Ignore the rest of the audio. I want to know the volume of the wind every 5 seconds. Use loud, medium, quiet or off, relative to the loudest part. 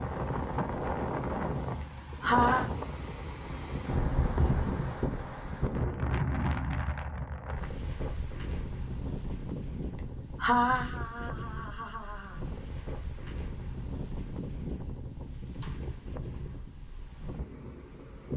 loud, loud, medium, medium.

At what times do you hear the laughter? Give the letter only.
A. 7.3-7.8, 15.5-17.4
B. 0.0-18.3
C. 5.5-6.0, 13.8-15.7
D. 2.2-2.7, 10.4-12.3
D.